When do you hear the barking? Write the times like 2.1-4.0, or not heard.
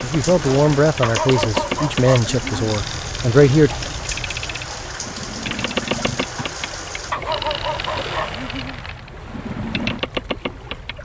1.0-2.7, 7.1-8.8.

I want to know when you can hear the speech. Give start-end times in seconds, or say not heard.
0.0-3.8.